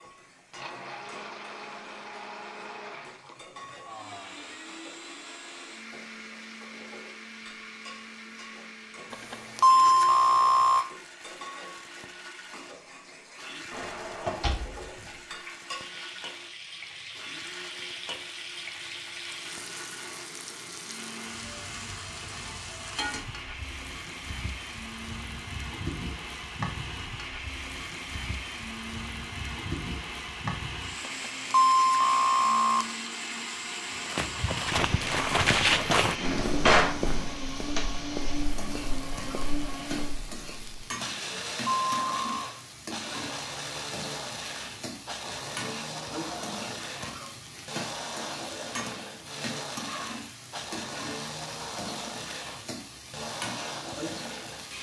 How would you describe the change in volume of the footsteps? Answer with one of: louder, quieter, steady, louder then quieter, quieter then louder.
quieter.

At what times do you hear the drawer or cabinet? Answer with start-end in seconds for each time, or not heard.
13.7-15.1, 36.1-37.0.